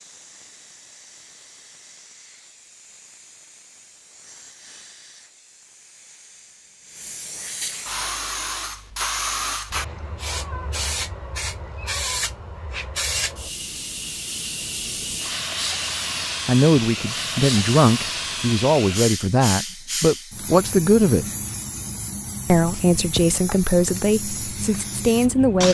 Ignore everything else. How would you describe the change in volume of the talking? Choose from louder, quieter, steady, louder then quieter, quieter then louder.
steady.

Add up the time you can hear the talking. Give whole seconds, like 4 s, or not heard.
8 s.